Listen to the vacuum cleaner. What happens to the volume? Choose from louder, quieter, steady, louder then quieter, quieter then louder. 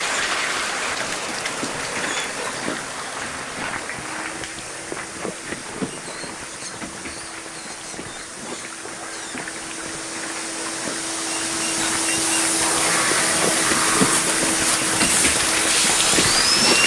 louder.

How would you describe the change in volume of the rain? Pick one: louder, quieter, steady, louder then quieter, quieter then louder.
quieter then louder.